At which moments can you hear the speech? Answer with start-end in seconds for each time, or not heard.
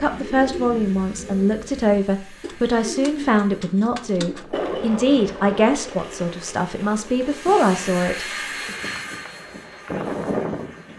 0.0-8.8.